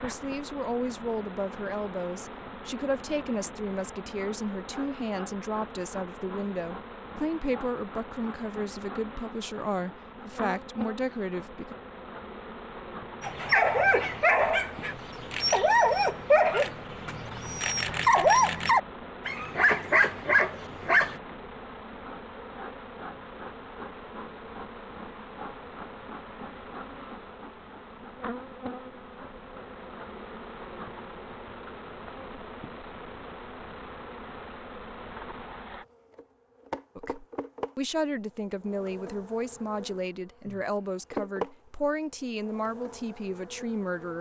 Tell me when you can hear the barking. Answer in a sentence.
The barking can be heard from 13.2 to 21.1 s.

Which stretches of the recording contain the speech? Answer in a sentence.
You can hear the speech from 0.0 to 11.8 s and from 37.0 to 44.1 s.